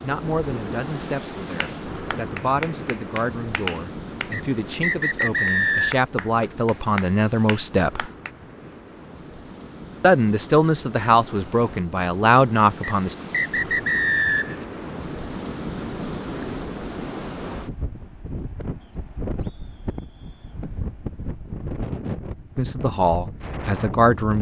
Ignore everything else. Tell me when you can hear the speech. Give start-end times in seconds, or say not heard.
0.0-8.1, 10.0-13.2, 22.6-24.3.